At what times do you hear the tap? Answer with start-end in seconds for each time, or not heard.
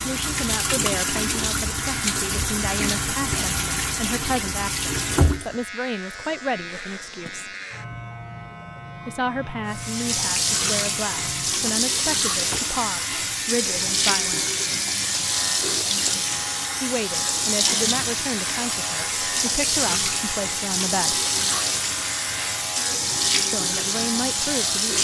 0.0-5.6, 9.7-24.9.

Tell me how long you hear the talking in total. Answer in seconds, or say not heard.
19 s.